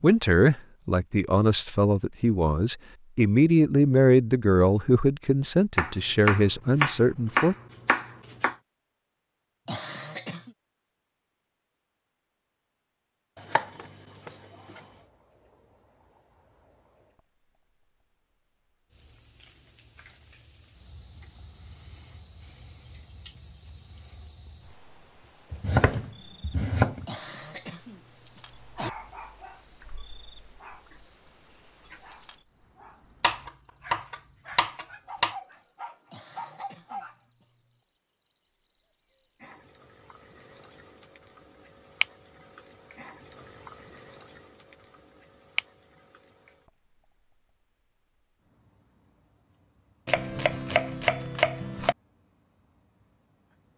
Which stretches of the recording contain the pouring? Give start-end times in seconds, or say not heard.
not heard.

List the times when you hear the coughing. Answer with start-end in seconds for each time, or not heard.
9.7-10.6, 27.1-28.9, 36.1-37.8.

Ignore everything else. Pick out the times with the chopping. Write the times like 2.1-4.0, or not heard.
5.8-8.6, 13.3-14.8, 25.5-27.1, 33.2-35.4, 50.0-52.0.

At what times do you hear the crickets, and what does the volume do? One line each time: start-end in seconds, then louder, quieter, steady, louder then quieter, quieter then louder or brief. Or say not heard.
14.8-53.7 louder then quieter.